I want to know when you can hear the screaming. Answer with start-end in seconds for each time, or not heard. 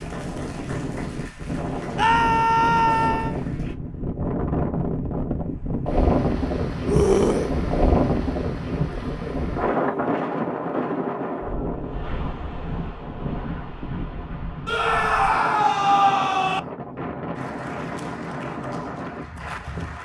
1.9-3.4, 6.8-7.5, 14.7-16.6.